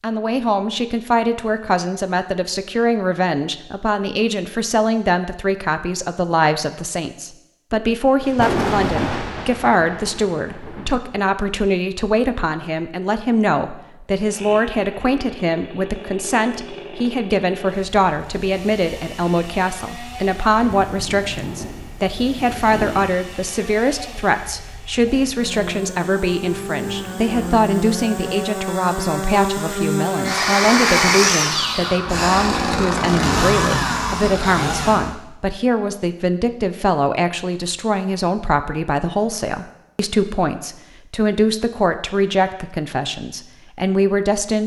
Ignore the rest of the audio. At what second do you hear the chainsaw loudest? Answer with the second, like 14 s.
31 s.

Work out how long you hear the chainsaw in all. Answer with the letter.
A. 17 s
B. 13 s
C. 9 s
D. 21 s
D.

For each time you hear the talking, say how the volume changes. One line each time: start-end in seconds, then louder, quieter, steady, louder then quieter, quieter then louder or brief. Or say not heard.
0.0-44.6 steady.